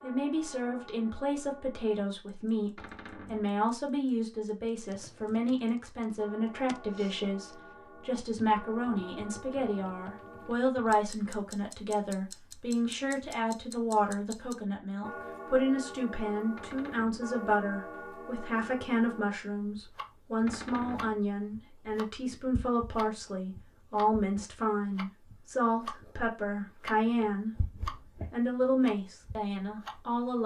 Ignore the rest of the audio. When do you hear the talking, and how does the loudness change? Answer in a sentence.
You can hear the talking from 0.0 to 27.5 s, at a steady volume; and briefly from 28.3 to 30.4 s.